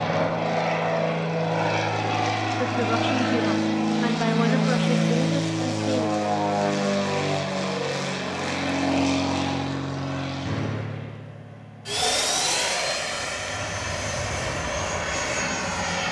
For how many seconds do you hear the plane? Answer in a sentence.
The plane can be heard for 16 seconds in total.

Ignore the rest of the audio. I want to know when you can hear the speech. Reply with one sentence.
You can hear the speech from 2.5 to 6.1 s.